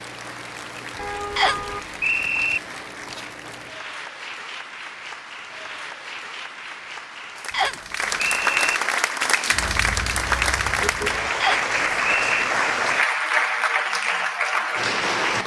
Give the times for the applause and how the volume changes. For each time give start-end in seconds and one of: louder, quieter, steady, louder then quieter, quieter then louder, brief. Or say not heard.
0.0-15.4 louder.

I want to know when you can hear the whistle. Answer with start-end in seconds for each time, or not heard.
1.4-2.6, 7.5-8.8, 11.4-12.4.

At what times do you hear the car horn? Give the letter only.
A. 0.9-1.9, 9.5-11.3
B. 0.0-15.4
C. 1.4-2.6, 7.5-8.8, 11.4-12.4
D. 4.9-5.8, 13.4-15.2
A.